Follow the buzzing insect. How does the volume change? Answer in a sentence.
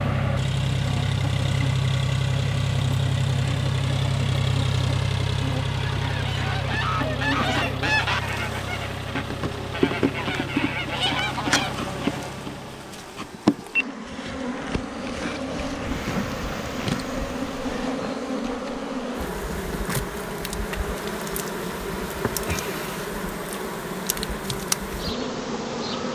The loudness of the buzzing insect goes up.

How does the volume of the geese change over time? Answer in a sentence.
The volume of the geese goes down, then up.